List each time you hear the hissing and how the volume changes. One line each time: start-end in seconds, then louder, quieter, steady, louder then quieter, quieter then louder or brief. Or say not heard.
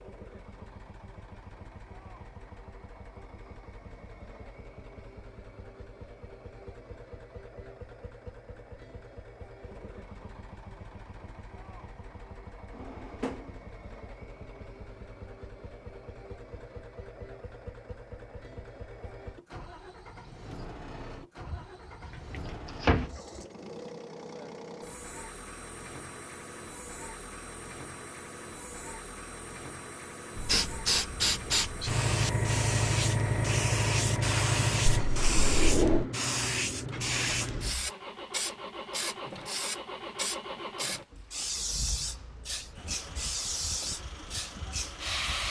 30.4-45.4 quieter.